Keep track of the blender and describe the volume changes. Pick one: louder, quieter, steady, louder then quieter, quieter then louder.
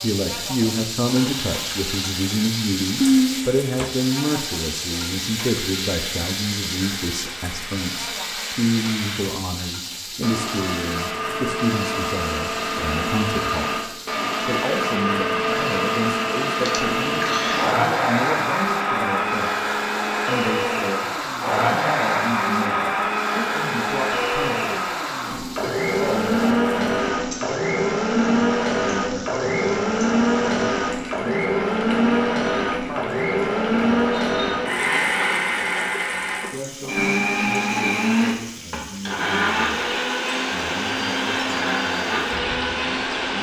louder.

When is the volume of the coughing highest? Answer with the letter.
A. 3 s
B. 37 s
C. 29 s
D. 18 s
A.